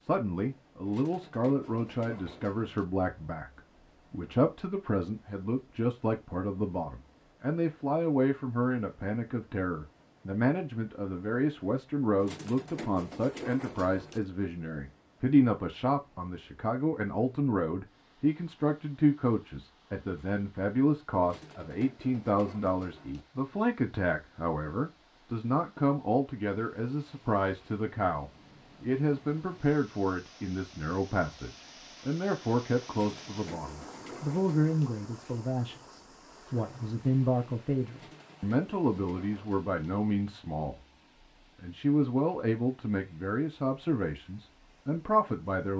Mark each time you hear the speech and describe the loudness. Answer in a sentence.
The speech can be heard from 0.0 to 40.8 s, at a steady volume; and from 41.6 to 45.7 s, getting quieter then louder.